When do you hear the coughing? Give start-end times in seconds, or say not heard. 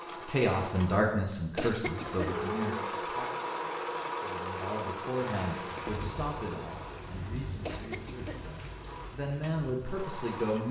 1.6-2.5, 7.6-8.5.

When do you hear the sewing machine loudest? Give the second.
3 s.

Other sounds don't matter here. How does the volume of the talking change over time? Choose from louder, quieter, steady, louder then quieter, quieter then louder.
quieter then louder.